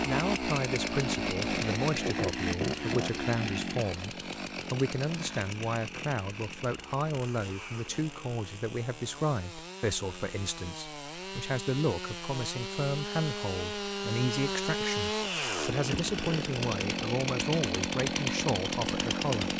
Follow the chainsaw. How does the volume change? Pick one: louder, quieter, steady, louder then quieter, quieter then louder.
quieter then louder.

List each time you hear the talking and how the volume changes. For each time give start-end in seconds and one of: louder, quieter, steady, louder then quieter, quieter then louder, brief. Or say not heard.
0.1-19.5 steady.